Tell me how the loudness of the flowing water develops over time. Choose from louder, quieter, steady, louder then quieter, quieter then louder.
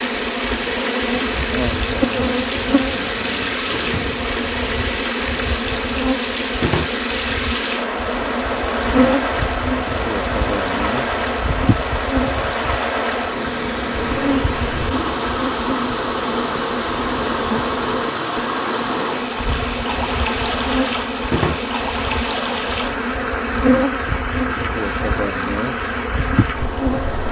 steady.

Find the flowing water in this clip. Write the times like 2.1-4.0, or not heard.
0.0-27.2.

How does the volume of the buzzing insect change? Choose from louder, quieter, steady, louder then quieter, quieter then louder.
steady.